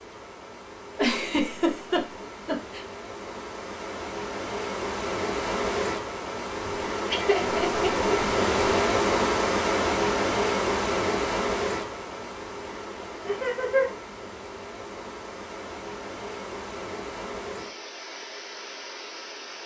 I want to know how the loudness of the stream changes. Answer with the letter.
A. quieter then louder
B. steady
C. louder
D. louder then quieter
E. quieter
D.